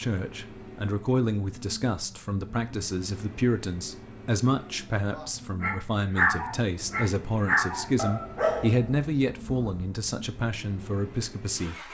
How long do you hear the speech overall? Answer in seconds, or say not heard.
12 s.